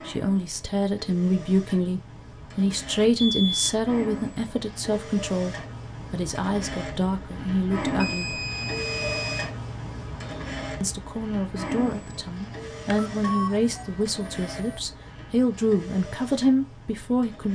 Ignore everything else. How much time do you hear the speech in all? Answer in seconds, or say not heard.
15 s.